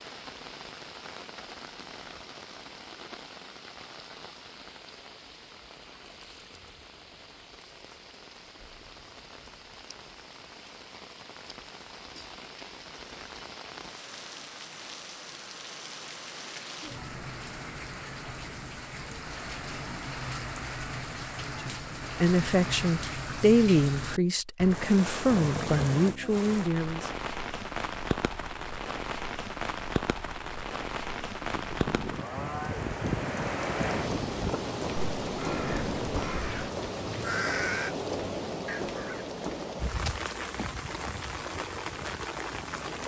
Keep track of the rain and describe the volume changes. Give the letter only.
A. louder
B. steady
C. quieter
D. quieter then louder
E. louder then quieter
A.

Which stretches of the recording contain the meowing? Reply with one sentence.
The meowing can't be heard in this clip.